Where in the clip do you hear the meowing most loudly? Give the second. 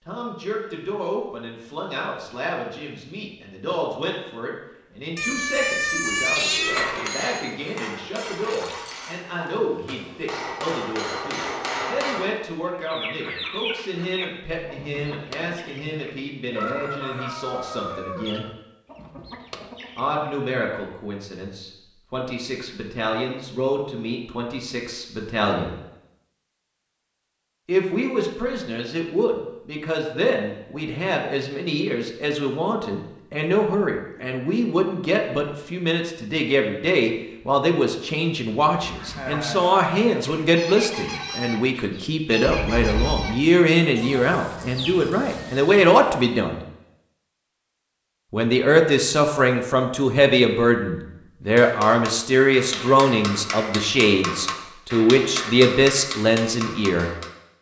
6 s.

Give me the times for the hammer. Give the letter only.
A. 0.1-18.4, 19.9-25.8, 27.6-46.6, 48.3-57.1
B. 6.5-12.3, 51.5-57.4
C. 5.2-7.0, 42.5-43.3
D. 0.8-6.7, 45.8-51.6
B.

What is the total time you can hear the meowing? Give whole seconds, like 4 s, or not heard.
3 s.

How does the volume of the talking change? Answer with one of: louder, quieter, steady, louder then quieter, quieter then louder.
louder.